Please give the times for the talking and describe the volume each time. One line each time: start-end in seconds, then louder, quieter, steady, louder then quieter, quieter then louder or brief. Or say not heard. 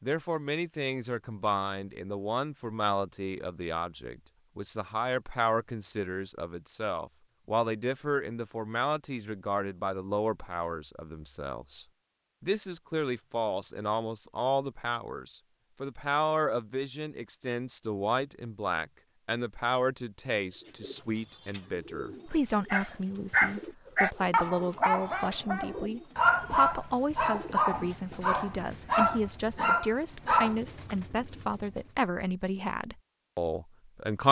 0.0-34.2 steady.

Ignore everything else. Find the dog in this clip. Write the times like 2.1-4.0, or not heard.
22.7-30.6.